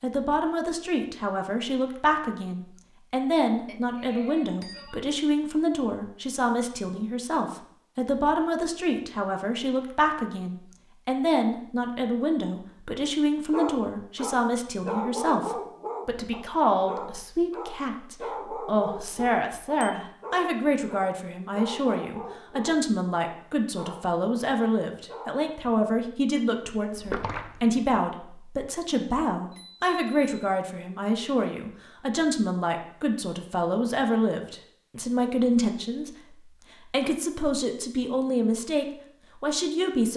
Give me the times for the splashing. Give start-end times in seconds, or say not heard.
26.9-27.8.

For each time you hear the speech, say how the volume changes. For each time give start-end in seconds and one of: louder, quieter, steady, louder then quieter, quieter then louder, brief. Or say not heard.
0.0-40.1 steady.